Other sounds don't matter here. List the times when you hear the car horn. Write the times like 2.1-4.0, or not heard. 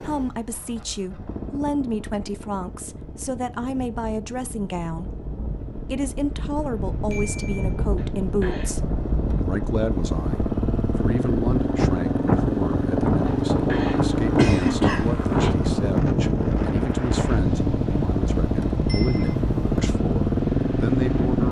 not heard.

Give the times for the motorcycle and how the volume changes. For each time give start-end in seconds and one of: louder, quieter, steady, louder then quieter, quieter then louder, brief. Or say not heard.
0.0-21.4 louder.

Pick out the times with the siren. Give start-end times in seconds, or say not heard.
not heard.